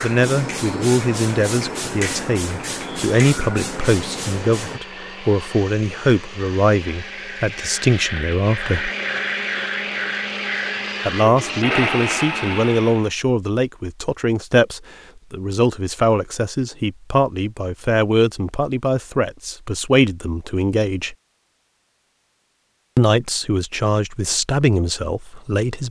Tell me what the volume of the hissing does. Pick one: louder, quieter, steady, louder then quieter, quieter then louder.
steady.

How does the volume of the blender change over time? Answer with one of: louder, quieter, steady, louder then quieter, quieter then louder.
louder.